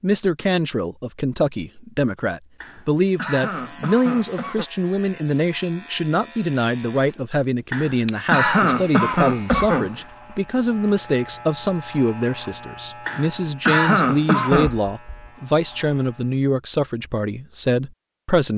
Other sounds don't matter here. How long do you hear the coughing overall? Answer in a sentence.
You can hear the coughing for 6 seconds altogether.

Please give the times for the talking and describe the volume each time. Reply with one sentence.
The talking can be heard from 0.0 to 18.5 s, at a steady volume.